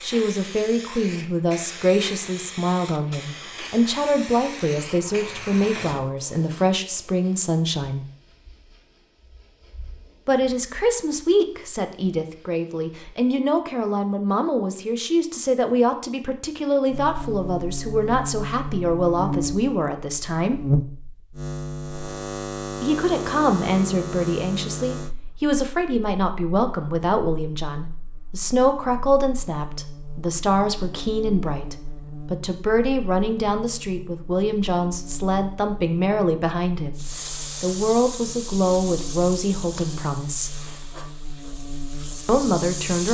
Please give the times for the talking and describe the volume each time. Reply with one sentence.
You can hear the talking from 0.0 to 8.1 s, at a steady volume; from 10.2 to 20.6 s, at a steady volume; from 22.8 to 40.6 s, at a steady volume; and briefly from 42.2 to 43.0 s.